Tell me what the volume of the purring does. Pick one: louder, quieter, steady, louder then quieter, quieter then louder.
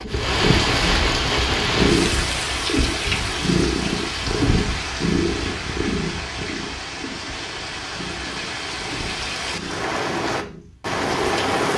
quieter.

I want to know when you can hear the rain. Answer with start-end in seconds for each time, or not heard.
0.0-11.7.